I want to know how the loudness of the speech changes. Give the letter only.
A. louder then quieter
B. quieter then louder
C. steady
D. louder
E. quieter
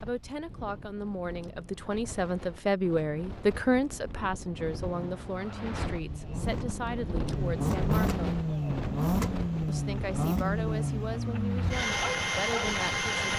A.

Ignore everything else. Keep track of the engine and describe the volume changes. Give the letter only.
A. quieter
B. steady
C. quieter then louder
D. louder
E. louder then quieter
D.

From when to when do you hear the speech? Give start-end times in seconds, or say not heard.
0.0-8.2, 9.7-13.3.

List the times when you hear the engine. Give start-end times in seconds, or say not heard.
4.9-13.3.